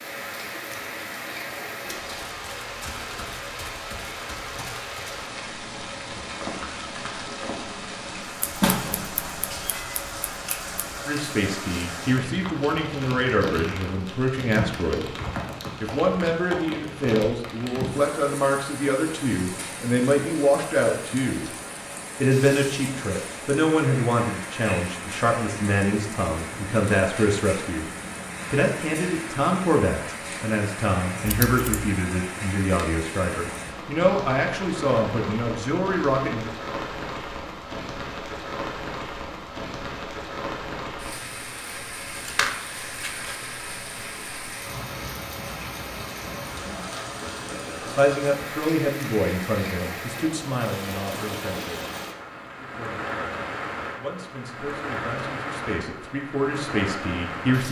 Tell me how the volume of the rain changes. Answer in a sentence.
The volume of the rain stays about the same.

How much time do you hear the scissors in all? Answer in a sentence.
You can hear the scissors for 4 seconds altogether.